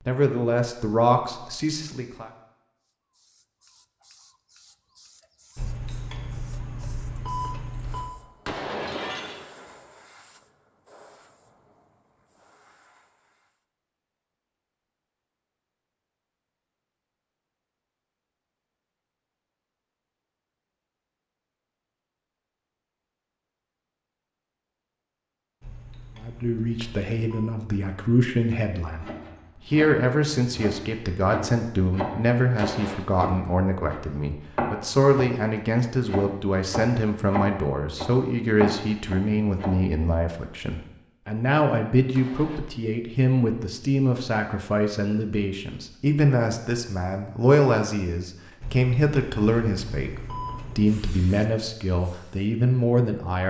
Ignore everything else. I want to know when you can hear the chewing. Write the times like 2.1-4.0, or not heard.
not heard.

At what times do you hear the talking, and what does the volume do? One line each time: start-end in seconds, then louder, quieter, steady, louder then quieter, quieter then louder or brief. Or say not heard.
0.1-2.3 brief
26.2-53.4 steady.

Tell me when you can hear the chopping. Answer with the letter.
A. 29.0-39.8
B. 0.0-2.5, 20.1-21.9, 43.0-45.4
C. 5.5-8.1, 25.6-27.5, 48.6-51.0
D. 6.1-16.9
A.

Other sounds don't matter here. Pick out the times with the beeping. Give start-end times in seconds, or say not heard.
5.5-8.1, 25.6-27.5, 48.6-51.0.